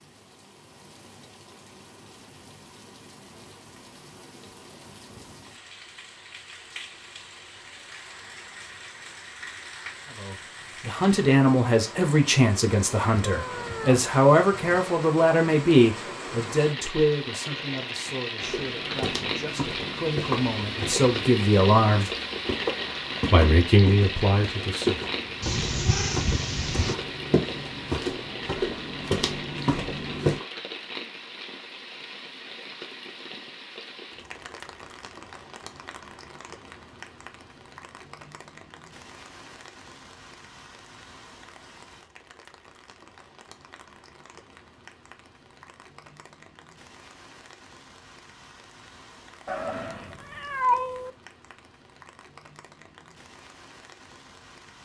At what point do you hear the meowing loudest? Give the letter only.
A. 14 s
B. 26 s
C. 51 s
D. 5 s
C.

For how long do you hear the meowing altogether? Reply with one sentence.
The meowing can be heard for 5 seconds in total.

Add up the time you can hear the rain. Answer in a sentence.
The rain can be heard for 55 seconds in total.